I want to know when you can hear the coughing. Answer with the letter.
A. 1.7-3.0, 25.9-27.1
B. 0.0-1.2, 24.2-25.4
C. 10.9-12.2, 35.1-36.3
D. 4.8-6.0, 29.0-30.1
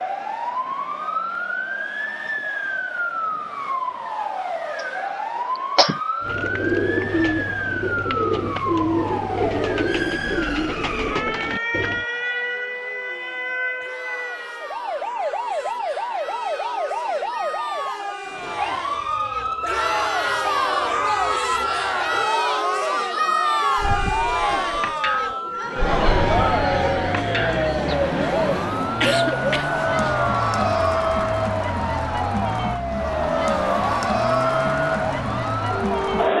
D.